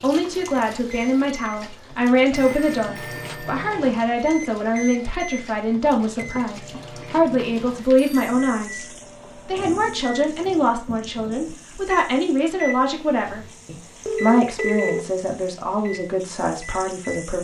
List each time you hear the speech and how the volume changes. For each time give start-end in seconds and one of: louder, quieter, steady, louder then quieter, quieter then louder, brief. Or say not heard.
0.0-17.3 steady.